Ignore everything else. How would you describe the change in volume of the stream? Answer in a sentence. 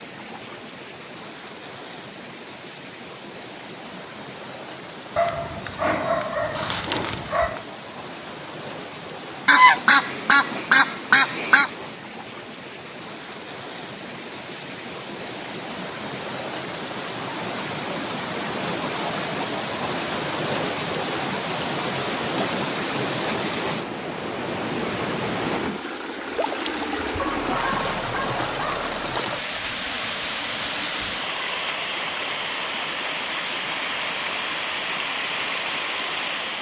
The volume of the stream goes up.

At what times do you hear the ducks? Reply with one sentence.
The ducks can be heard from 9.4 to 11.7 s.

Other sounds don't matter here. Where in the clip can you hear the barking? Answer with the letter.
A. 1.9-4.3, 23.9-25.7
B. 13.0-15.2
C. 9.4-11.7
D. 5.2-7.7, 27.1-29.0
D.